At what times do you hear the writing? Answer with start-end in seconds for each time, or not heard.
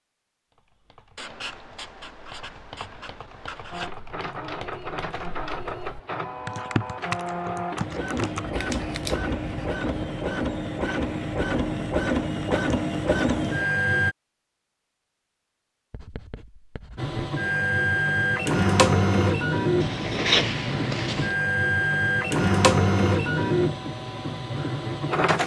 1.1-4.0, 8.4-10.1, 15.9-17.1, 19.8-21.4.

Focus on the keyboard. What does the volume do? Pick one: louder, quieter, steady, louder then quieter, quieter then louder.
louder.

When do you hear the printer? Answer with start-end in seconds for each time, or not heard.
3.7-14.2, 16.9-25.4.